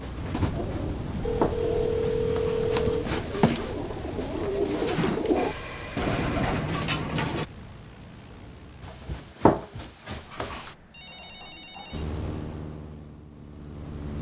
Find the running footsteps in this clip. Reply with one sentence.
The running footsteps can be heard from 0.0 to 4.5 s and from 8.8 to 10.8 s.